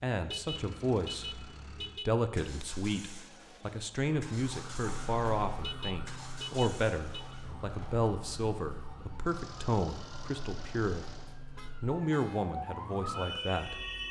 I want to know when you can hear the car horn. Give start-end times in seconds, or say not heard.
0.2-2.1, 5.5-7.3, 11.6-12.5.